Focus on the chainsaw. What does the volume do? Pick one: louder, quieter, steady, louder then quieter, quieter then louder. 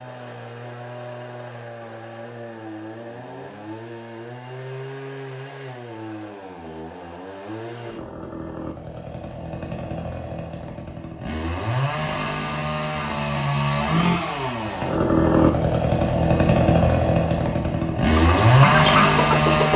louder.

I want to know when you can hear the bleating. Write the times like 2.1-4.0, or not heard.
not heard.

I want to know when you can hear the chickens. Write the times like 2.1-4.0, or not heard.
18.2-19.7.